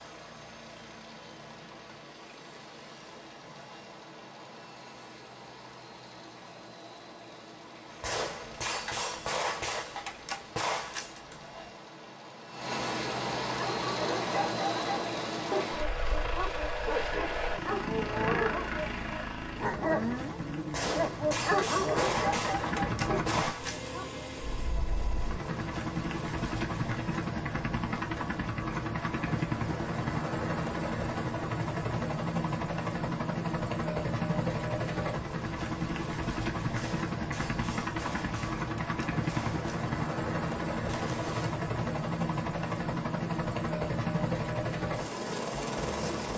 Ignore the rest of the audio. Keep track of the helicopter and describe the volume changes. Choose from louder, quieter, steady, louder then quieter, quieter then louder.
louder.